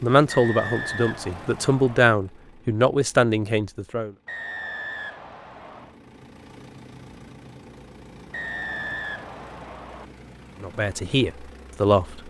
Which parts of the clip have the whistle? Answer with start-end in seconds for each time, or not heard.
0.2-2.0, 4.2-6.0, 8.3-10.1.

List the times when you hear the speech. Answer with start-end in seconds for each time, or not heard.
0.0-4.1, 10.6-12.2.